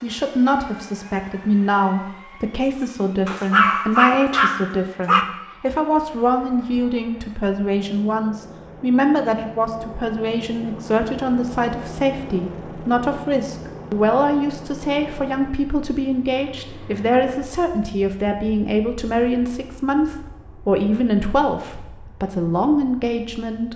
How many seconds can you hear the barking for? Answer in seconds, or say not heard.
2 s.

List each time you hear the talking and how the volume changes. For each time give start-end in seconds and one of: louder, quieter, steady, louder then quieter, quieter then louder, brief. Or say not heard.
0.0-23.7 steady.